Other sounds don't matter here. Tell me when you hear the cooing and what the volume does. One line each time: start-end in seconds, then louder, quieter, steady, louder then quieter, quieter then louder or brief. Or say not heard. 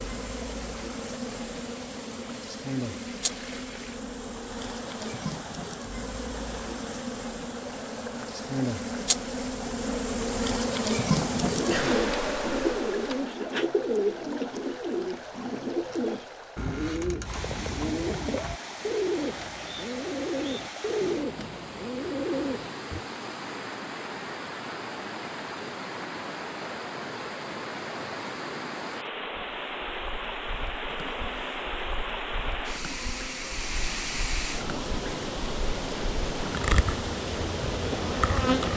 11.2-23.1 steady.